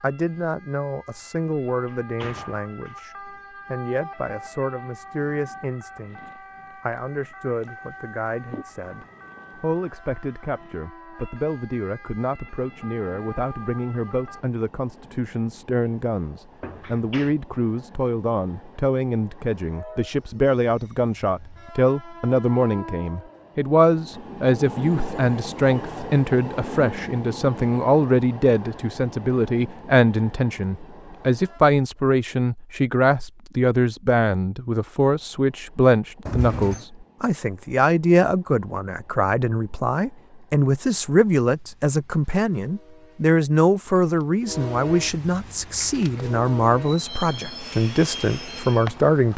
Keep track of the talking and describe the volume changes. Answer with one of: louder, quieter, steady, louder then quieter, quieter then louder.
louder.